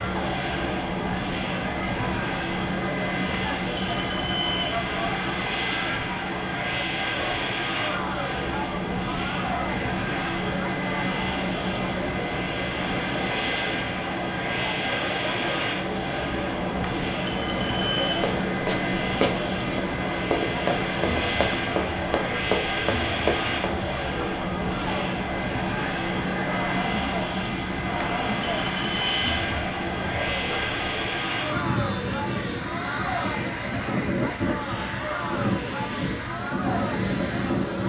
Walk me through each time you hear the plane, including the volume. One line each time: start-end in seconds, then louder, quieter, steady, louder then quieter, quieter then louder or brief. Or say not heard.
0.0-37.8 steady.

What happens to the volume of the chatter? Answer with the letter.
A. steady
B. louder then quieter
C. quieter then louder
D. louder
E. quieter
A.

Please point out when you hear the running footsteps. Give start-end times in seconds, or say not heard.
18.2-23.8.